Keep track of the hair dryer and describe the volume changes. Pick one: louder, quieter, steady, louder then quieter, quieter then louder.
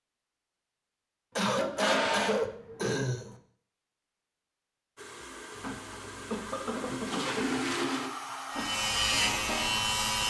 louder.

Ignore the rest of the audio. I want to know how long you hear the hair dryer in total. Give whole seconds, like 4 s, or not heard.
5 s.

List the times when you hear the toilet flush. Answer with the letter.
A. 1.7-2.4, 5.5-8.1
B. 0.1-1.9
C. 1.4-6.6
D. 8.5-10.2
A.